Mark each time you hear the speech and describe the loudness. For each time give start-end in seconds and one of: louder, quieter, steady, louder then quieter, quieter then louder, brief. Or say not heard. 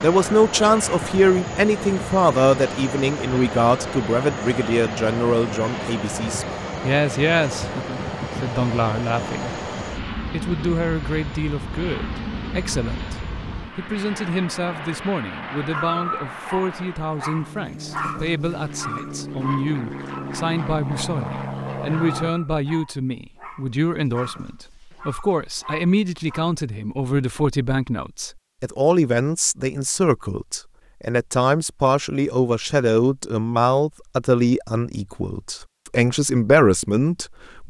0.0-37.6 quieter then louder.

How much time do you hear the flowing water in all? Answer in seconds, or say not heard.
not heard.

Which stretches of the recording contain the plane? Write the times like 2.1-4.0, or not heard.
0.0-22.4.